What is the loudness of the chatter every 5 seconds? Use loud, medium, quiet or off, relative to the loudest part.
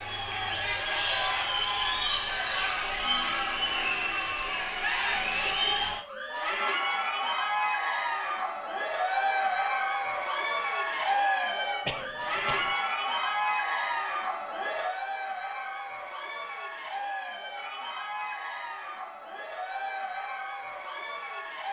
loud, loud, loud, medium, medium.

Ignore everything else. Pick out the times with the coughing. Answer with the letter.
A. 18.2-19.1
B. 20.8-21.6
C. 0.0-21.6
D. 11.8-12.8
D.